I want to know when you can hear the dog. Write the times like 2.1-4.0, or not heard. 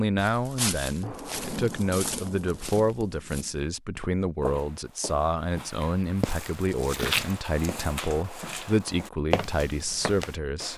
not heard.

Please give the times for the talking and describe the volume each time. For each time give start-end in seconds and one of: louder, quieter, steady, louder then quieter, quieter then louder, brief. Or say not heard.
0.0-10.7 steady.